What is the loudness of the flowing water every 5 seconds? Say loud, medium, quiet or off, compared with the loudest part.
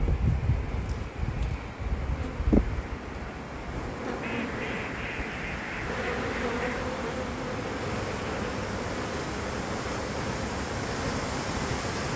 medium, loud, loud.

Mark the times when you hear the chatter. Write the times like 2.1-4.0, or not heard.
not heard.